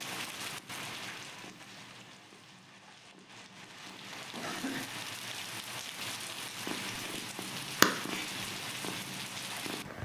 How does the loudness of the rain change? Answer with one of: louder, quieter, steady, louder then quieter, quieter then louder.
quieter then louder.